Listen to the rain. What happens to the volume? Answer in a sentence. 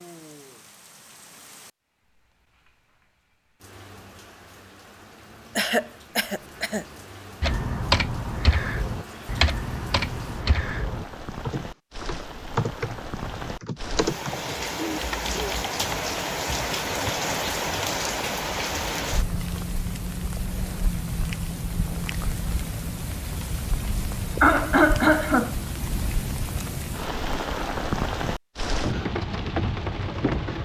The loudness of the rain goes up.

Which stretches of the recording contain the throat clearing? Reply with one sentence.
The throat clearing can be heard from 5.5 to 6.8 s, from 14.8 to 15.6 s and from 24.4 to 25.6 s.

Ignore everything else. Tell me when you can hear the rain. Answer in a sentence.
The rain can be heard from 0.0 to 30.6 s.